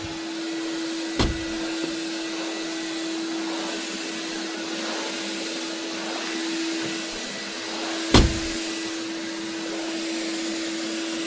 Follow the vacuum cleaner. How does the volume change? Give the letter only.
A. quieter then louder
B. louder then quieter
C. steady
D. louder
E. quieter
C.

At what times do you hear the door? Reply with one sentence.
You can hear the door from 1.1 to 1.6 s and from 8.1 to 8.5 s.